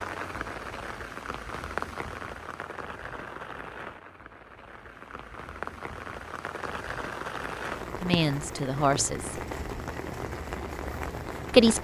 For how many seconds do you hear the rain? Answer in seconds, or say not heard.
12 s.